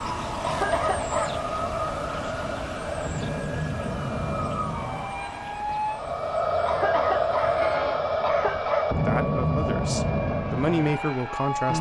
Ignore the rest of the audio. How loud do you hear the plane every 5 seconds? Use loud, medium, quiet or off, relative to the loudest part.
medium, loud, loud.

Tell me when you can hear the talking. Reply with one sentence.
The talking can be heard from 8.9 to 11.7 s.